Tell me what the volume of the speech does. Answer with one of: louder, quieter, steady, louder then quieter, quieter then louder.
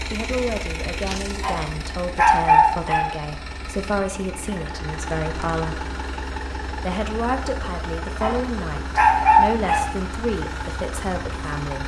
steady.